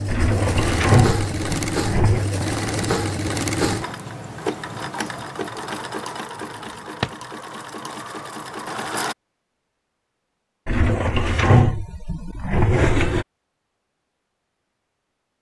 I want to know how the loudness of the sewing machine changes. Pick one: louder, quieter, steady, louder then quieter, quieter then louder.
quieter.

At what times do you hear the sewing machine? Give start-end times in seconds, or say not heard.
0.0-9.2.